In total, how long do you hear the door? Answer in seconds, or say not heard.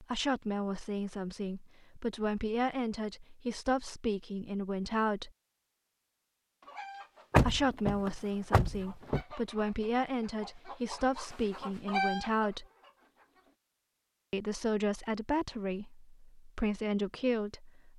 2 s.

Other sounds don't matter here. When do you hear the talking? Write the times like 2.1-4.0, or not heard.
0.0-5.3, 7.3-12.7, 14.3-17.9.